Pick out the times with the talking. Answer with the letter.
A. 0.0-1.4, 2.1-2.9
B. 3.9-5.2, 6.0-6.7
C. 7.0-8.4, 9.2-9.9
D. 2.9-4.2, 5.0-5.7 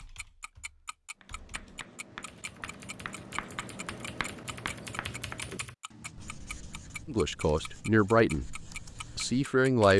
C.